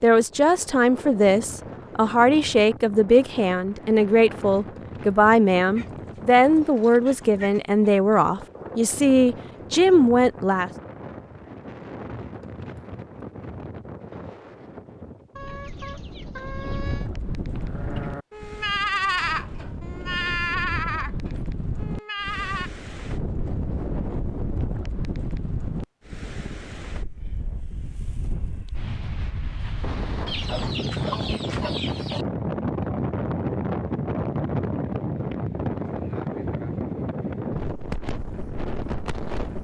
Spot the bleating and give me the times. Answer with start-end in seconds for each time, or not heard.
17.5-22.7.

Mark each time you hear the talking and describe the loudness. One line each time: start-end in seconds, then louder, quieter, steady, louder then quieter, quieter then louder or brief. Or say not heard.
0.0-10.7 steady.